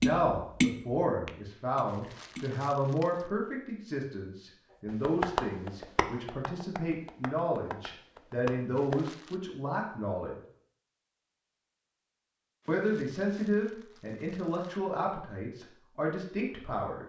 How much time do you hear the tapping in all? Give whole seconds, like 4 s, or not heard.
7 s.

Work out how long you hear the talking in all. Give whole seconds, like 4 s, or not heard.
15 s.